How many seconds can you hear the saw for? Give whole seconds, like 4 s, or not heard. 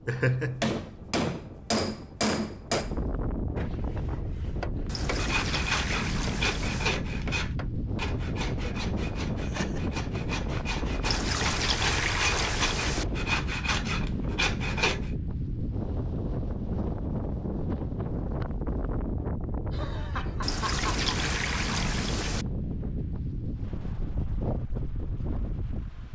10 s.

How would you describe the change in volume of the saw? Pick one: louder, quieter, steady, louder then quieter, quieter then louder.
quieter then louder.